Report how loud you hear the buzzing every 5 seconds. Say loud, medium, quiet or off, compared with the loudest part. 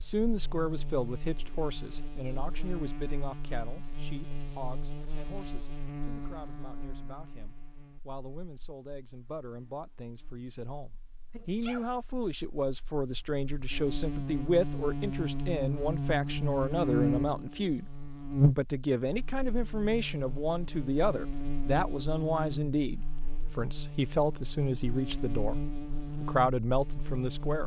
quiet, quiet, medium, loud, medium, medium.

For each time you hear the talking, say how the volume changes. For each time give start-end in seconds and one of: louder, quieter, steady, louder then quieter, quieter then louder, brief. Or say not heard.
0.0-27.6 quieter then louder.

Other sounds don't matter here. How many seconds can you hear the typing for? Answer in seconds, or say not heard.
not heard.